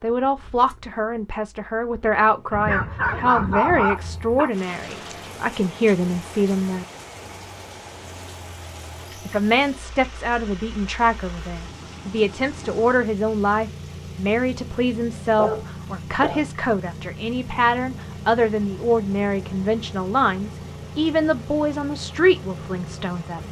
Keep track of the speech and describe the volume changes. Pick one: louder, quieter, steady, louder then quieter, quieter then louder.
steady.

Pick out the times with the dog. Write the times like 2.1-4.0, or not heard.
2.5-4.5, 15.2-16.4.